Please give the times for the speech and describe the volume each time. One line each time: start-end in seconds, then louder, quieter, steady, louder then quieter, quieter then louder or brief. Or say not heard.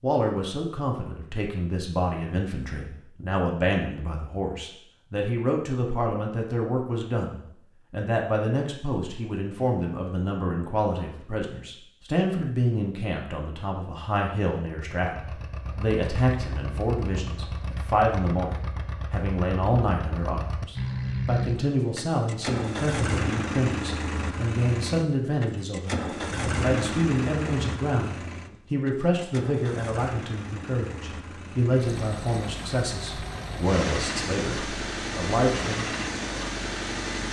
0.0-36.0 steady.